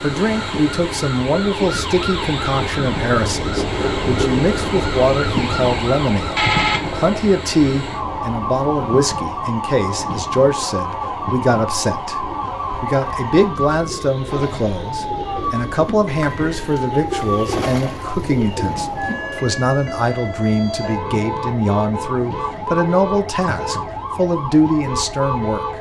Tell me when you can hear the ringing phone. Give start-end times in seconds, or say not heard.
not heard.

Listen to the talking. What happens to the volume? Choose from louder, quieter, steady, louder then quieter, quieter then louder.
steady.